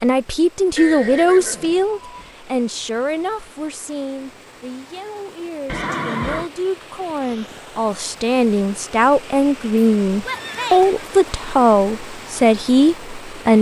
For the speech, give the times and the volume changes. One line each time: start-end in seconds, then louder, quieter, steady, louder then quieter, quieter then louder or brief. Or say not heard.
0.0-13.5 quieter then louder.